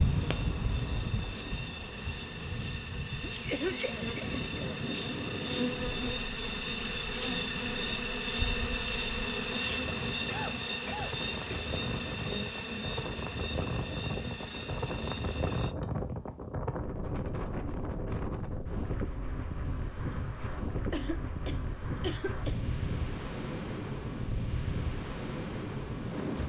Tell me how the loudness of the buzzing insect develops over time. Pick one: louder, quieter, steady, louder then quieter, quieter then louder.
louder then quieter.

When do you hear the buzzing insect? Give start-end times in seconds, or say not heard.
0.0-15.8.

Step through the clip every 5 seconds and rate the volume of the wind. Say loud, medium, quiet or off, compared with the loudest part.
loud, medium, loud, loud, loud, loud.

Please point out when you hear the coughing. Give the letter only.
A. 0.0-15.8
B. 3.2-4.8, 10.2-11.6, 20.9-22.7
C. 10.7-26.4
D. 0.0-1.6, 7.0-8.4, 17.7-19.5
B.